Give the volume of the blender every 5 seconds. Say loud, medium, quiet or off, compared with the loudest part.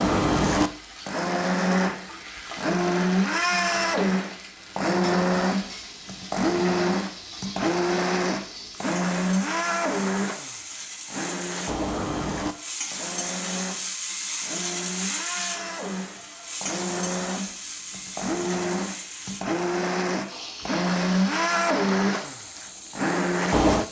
loud, loud, medium, medium, loud.